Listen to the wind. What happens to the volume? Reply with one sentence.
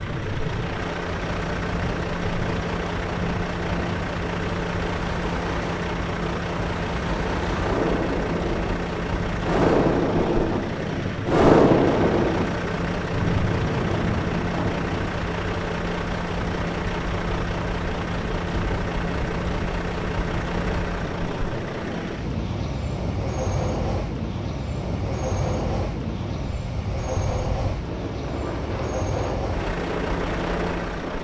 The volume of the wind goes up, then down.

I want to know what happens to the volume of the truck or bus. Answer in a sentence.
The volume of the truck or bus stays about the same.